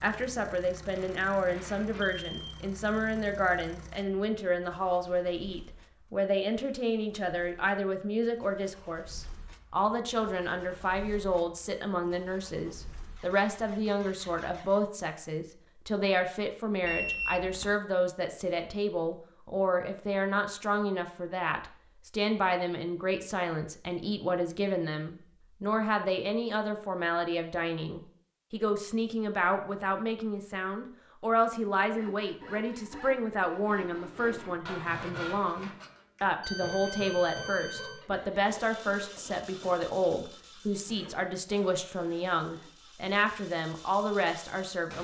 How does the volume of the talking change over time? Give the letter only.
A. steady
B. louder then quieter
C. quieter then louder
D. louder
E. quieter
A.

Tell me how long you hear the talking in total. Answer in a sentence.
The talking can be heard for 45 seconds in total.